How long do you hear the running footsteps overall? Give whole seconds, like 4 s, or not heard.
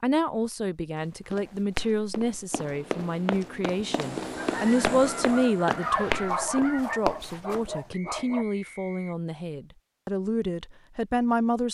7 s.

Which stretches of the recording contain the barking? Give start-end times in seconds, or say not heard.
5.2-8.4.